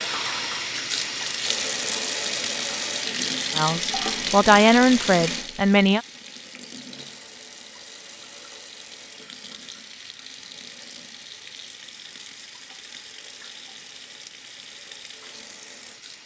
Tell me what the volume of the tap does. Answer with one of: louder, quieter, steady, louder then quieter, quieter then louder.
quieter.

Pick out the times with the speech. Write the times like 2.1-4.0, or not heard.
3.5-6.0.